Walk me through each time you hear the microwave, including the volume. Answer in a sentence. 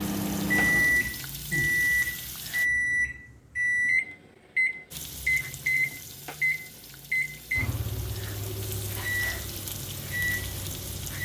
The microwave can be heard from 0.0 to 11.2 s, getting quieter.